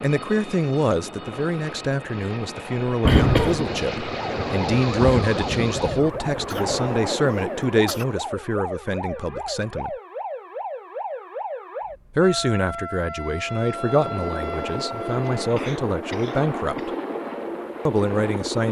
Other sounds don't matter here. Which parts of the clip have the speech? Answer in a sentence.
You can hear the speech from 0.0 to 9.9 s, from 12.2 to 16.9 s and from 17.9 to 18.6 s.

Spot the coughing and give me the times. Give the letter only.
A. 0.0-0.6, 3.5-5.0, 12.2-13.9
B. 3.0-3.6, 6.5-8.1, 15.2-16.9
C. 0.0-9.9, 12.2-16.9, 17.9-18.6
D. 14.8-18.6
B.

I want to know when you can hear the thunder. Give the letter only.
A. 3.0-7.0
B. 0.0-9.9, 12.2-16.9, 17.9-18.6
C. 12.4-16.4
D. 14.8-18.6
A.